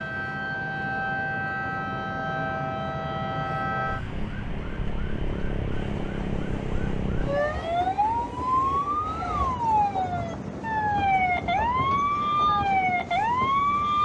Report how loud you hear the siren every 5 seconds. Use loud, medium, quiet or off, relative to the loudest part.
medium, loud, loud.